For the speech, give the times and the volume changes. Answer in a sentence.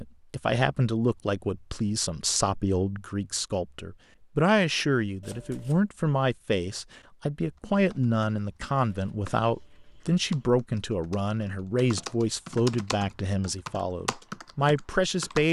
The speech can be heard from 0.0 to 15.4 s, at a steady volume.